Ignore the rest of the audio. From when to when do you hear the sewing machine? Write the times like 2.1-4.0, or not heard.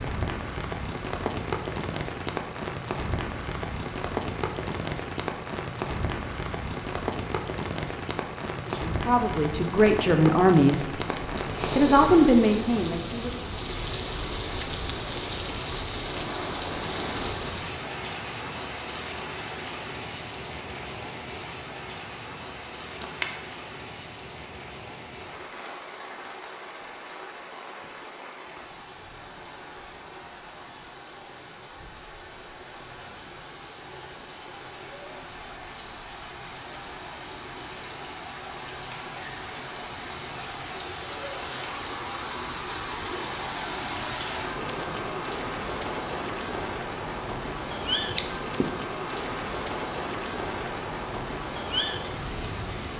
not heard.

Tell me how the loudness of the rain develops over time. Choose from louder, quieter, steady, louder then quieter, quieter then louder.
quieter then louder.